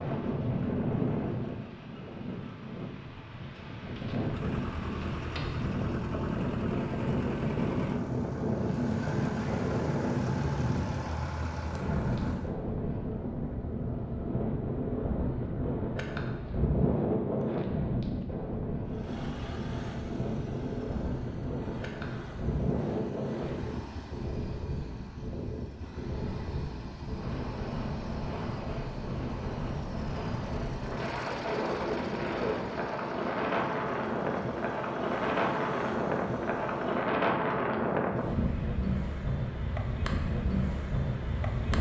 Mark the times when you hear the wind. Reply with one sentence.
You can hear the wind from 0.0 to 41.7 s.